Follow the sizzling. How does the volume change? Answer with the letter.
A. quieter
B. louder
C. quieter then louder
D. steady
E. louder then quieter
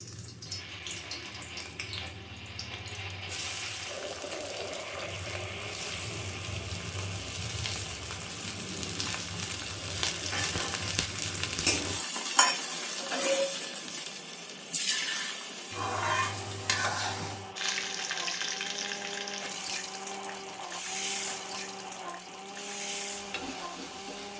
E.